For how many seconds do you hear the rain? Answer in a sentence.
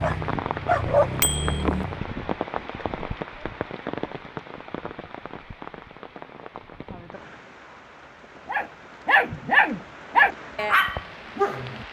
The rain can be heard for 12 seconds in total.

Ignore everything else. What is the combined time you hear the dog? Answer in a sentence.
You can hear the dog for 5 seconds altogether.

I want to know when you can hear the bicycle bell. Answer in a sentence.
The bicycle bell can be heard from 1.2 to 1.6 s.